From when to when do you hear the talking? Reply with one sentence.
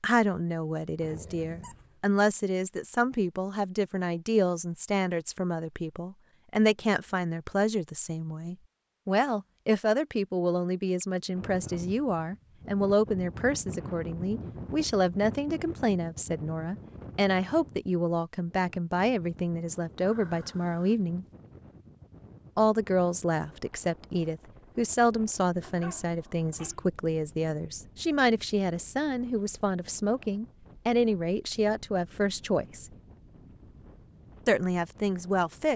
You can hear the talking from 0.0 to 21.2 s, from 22.6 to 32.9 s and from 34.5 to 35.7 s.